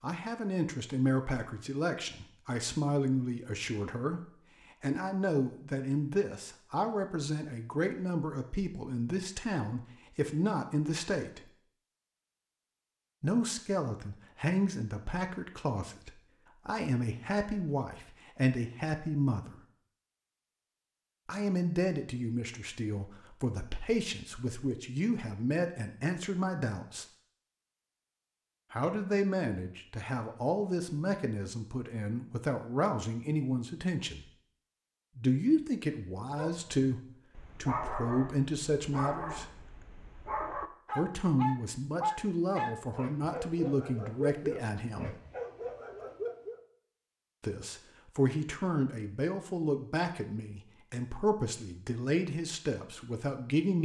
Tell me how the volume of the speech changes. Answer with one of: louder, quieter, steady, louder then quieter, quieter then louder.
steady.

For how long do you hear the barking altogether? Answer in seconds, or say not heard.
10 s.